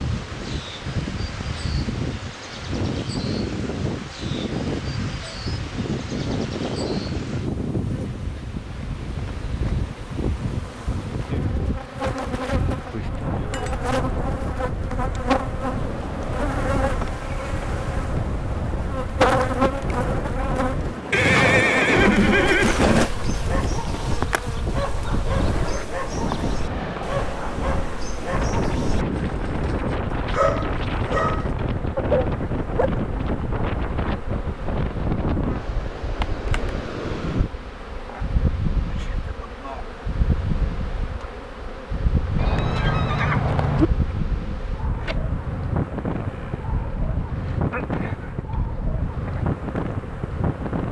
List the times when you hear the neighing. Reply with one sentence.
The neighing can be heard from 21.1 to 23.1 s and from 42.4 to 43.9 s.